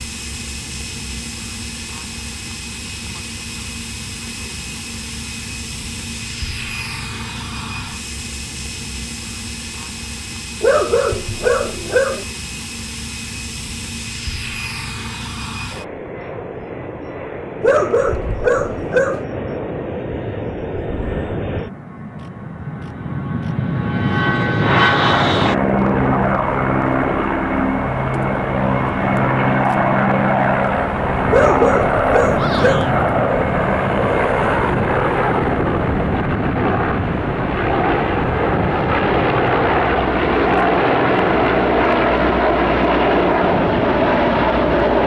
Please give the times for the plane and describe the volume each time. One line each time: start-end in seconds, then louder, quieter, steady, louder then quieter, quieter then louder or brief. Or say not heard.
0.0-45.0 louder.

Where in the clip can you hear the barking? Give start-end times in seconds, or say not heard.
10.6-12.2, 17.6-19.2, 31.2-33.0.